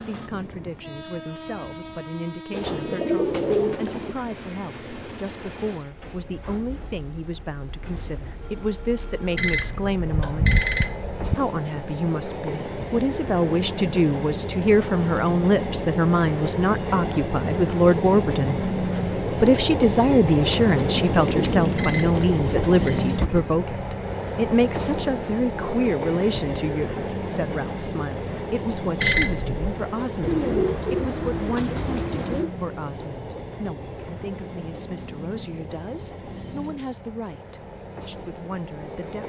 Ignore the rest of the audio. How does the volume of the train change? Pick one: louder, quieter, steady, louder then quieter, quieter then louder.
louder then quieter.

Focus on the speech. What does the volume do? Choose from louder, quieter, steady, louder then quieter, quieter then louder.
louder then quieter.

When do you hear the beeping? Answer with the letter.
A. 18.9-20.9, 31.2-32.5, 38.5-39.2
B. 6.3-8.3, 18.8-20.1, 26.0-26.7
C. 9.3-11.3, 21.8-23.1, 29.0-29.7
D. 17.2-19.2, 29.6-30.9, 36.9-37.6
C.